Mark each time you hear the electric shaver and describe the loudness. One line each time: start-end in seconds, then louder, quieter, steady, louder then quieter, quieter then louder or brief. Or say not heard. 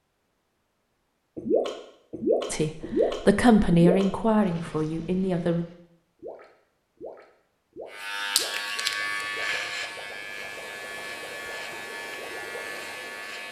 7.9-13.4 quieter.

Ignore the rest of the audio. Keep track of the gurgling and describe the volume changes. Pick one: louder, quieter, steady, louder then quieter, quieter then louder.
quieter.